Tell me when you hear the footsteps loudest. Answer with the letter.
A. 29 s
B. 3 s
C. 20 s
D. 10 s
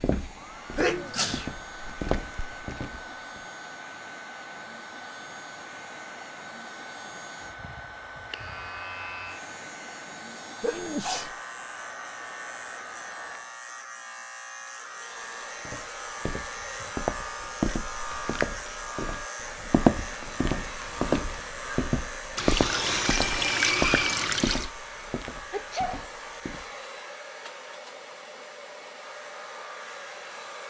C.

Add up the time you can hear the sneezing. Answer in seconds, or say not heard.
2 s.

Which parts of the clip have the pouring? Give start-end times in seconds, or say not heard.
22.4-24.7.